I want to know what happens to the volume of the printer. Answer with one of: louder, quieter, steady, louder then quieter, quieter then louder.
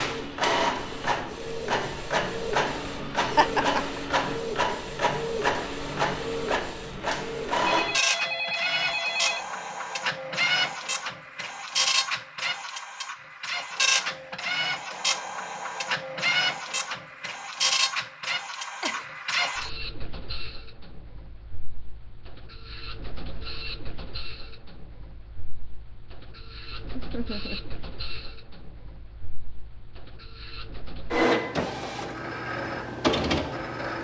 quieter then louder.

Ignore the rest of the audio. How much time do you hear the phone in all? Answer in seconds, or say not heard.
2 s.